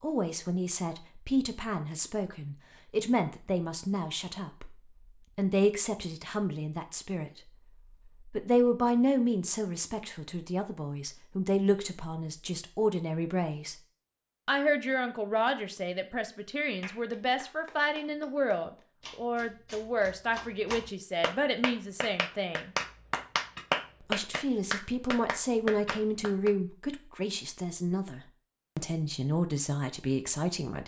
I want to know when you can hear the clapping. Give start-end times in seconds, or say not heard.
16.8-26.5.